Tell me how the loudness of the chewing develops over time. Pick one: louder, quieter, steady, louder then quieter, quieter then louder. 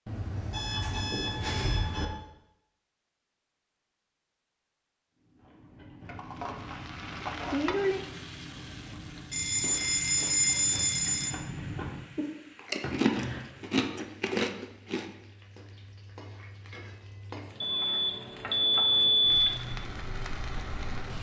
louder.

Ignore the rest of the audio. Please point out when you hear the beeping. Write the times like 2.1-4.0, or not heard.
0.1-2.0, 9.3-11.3, 17.6-19.6.